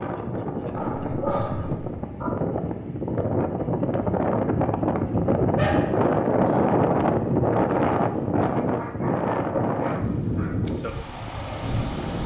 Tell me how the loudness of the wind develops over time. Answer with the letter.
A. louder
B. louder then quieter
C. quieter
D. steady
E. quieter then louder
B.